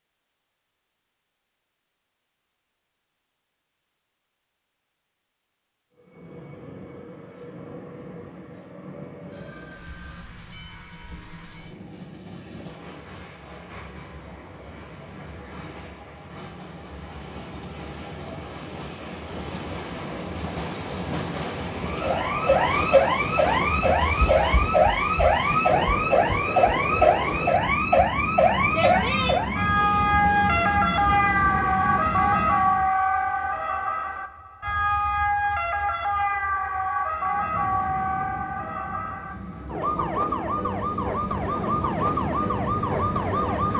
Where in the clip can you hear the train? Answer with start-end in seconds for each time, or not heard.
6.0-33.0, 37.1-43.7.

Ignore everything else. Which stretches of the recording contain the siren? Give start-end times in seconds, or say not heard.
21.8-43.7.